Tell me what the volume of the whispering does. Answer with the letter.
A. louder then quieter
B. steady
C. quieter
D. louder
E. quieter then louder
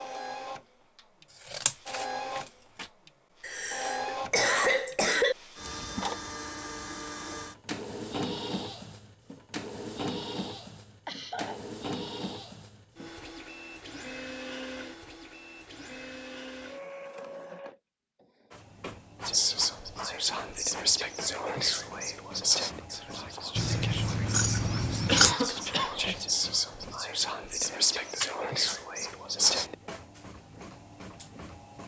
E.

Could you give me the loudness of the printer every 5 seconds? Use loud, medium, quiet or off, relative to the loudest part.
loud, loud, loud, medium, medium, medium, medium.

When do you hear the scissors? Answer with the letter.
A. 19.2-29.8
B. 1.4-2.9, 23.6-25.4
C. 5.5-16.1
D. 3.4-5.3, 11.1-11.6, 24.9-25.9
B.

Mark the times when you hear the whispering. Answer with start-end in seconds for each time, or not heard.
19.2-29.8.